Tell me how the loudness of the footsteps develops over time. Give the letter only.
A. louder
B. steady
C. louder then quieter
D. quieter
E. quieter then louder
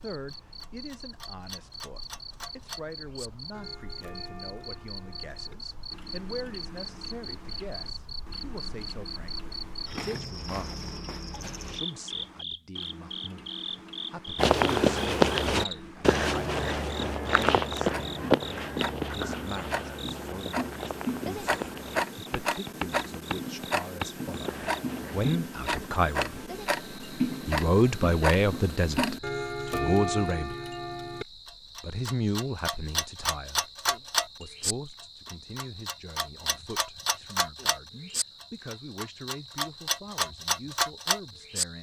D.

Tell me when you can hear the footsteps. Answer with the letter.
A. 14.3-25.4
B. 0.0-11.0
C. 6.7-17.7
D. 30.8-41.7
A.